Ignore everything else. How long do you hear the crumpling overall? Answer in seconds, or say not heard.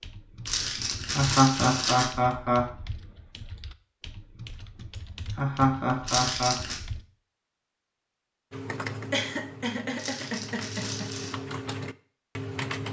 4 s.